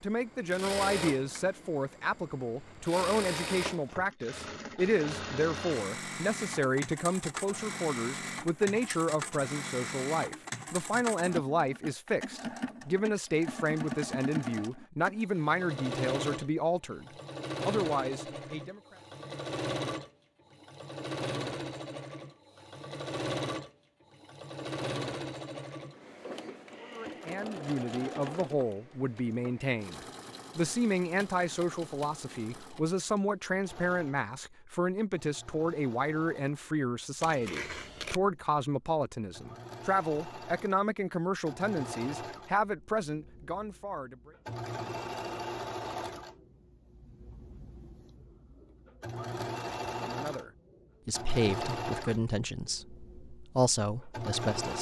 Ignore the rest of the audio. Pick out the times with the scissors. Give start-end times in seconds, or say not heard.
37.2-38.2.